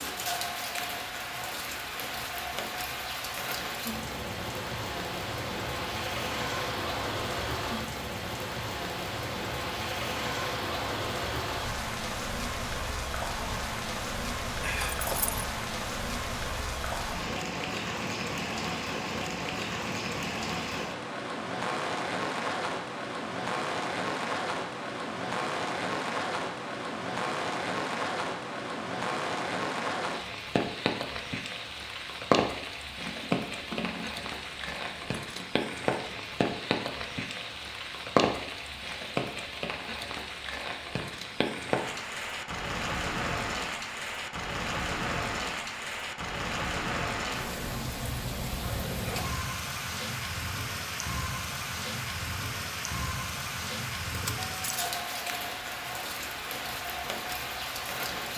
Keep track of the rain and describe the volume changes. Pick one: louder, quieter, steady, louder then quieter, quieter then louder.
steady.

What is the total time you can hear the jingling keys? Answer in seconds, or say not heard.
4 s.